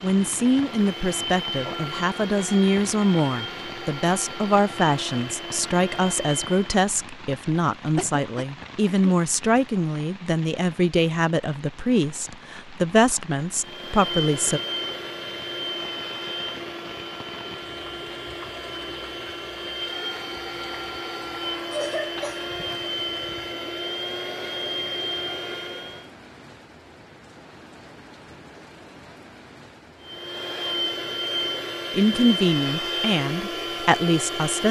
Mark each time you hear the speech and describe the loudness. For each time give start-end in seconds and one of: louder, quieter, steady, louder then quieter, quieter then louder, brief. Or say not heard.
0.0-14.6 steady
31.9-34.6 brief.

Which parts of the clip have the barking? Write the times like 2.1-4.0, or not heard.
not heard.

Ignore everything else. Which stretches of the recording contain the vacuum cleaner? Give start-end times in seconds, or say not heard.
0.0-6.8, 13.6-26.1, 30.0-34.6.